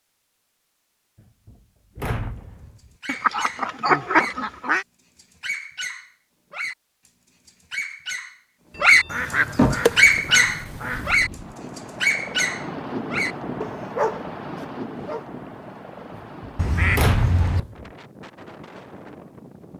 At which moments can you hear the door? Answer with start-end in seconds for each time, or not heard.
1.4-2.9, 8.7-9.9, 16.4-17.9.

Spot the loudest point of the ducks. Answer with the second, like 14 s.
4 s.